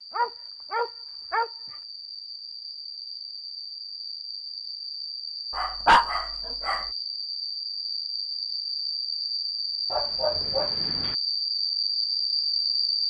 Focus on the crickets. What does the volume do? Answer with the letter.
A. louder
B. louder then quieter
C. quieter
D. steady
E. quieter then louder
A.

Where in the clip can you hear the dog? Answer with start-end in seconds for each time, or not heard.
0.1-1.5, 5.5-6.9, 9.9-11.2.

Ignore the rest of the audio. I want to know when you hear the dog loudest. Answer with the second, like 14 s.
6 s.